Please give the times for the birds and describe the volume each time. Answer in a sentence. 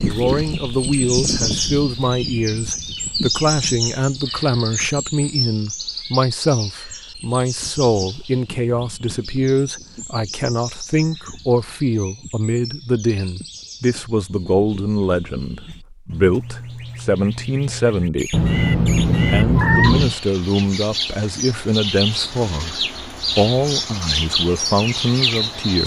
You can hear the birds from 0.0 to 25.8 s, getting quieter then louder.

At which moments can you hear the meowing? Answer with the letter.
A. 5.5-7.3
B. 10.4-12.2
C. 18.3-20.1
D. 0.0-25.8
C.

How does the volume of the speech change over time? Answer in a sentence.
The loudness of the speech stays about the same.